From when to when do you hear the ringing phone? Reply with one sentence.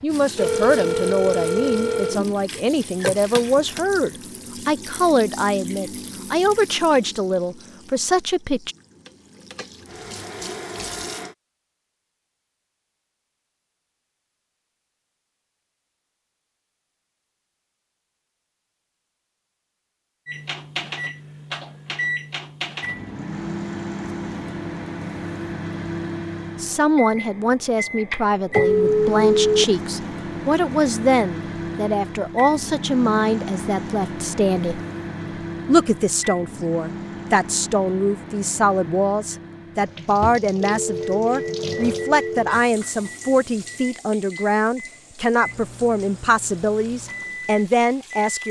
The ringing phone can be heard from 0.3 to 2.2 s, from 28.6 to 29.6 s and from 40.6 to 42.5 s.